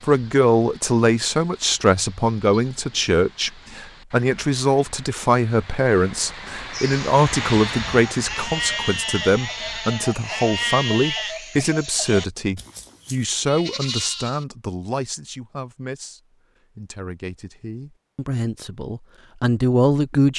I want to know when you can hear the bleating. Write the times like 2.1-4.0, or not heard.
6.7-14.4.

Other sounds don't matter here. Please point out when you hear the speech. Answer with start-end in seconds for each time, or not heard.
0.0-20.3.